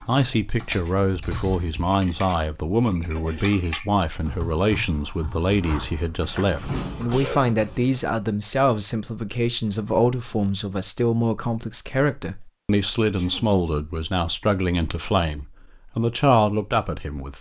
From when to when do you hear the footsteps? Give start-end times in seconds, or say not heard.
not heard.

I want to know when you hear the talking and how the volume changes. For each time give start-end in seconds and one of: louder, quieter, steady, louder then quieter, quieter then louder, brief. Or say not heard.
0.0-17.3 steady.